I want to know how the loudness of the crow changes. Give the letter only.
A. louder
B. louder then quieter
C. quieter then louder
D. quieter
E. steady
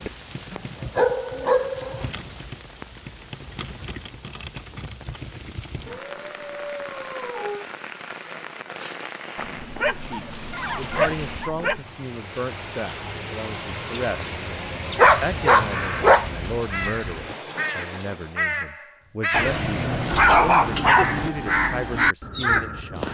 A.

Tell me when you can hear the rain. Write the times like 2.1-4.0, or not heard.
0.0-18.5.